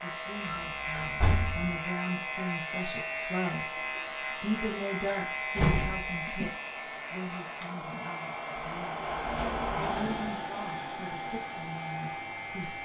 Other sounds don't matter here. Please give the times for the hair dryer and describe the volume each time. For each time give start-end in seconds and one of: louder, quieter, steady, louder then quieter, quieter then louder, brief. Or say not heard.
0.0-12.7 louder.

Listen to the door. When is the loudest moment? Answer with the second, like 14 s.
6 s.